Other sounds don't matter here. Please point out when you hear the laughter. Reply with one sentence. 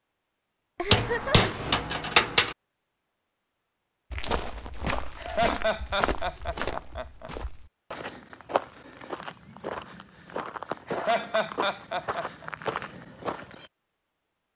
You can hear the laughter from 0.8 to 1.5 s, from 5.2 to 7.3 s and from 10.8 to 12.4 s.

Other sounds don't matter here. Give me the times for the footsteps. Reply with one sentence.
You can hear the footsteps from 4.1 to 13.7 s.